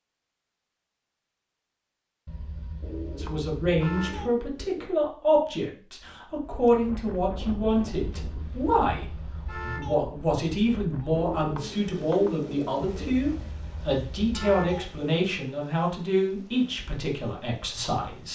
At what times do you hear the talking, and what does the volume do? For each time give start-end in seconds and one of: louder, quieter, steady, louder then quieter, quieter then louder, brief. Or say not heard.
3.1-18.2 steady.